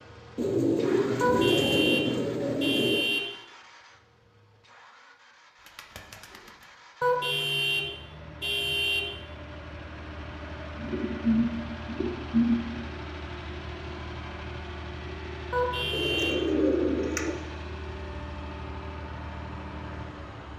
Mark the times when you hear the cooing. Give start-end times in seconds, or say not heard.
0.3-3.0, 5.7-6.5, 10.8-12.6, 15.9-17.4.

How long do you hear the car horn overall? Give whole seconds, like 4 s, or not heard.
5 s.